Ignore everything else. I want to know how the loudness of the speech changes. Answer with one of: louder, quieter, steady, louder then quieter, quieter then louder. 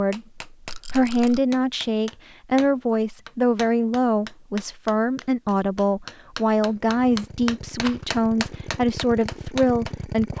steady.